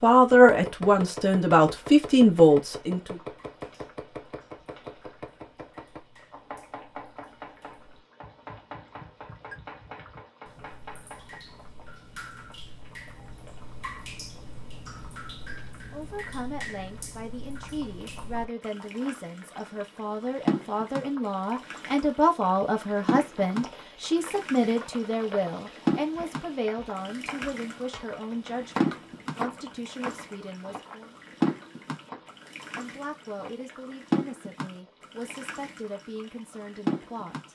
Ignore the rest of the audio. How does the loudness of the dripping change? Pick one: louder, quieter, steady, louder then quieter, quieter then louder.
louder.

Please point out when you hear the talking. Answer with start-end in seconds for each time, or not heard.
0.0-3.2, 15.9-31.1, 32.8-37.4.